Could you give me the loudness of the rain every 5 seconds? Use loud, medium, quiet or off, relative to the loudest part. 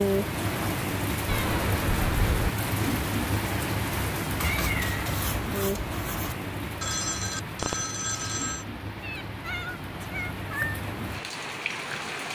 loud, medium, medium.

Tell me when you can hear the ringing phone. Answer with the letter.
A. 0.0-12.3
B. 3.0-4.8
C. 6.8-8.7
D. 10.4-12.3
C.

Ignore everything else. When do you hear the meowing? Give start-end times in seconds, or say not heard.
1.2-2.5, 4.3-6.3, 9.0-10.8.